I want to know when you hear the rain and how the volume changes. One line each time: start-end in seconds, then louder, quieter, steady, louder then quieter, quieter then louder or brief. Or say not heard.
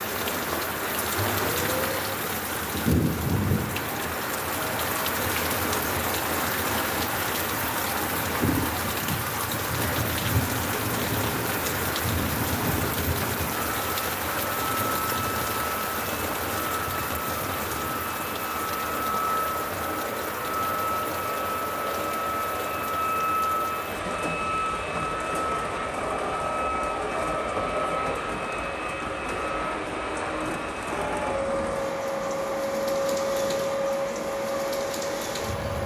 0.0-35.8 quieter.